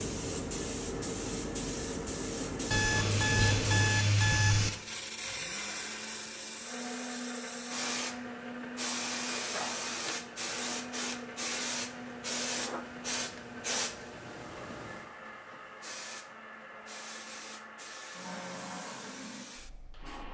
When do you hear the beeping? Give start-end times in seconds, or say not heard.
2.7-4.7.